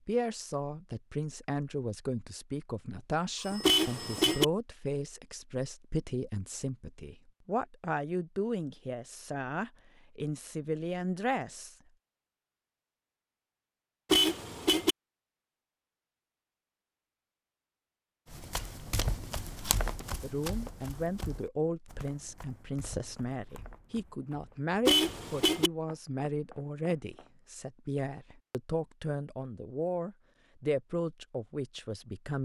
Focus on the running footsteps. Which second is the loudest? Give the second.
20 s.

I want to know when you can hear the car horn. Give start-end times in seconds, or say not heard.
3.6-4.5, 14.1-14.9, 24.9-25.7.